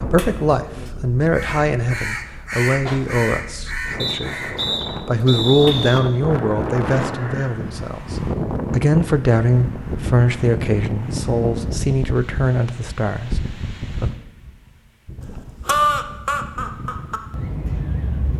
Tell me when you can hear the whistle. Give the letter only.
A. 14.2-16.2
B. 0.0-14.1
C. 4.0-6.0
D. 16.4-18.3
C.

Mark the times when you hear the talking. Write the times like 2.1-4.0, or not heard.
0.0-14.1.